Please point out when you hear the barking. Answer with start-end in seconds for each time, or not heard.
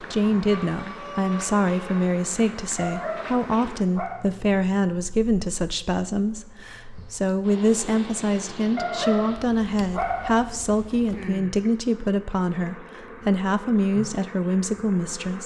2.8-4.2, 8.8-10.4.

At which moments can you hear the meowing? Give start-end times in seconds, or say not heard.
not heard.